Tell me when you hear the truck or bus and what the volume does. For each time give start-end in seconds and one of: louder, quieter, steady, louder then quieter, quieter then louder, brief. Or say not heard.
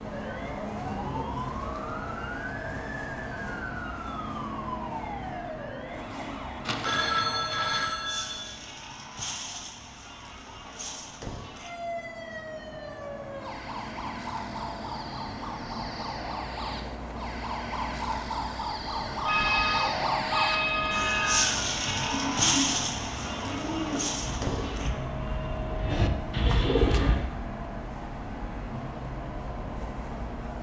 0.0-30.5 quieter then louder.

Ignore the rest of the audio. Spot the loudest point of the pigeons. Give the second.
27 s.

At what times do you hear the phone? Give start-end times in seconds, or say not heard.
6.7-8.4, 19.2-21.6.